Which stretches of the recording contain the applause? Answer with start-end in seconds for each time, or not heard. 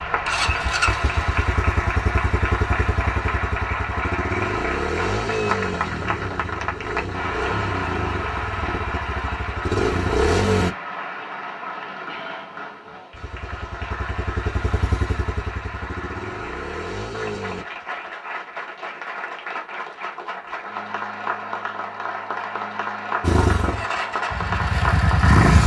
0.0-25.6.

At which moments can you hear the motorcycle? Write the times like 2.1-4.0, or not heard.
0.0-10.8, 13.1-17.6, 23.2-25.6.